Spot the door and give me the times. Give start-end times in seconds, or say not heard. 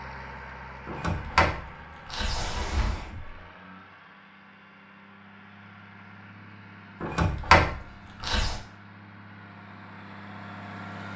0.8-3.3, 7.0-8.6.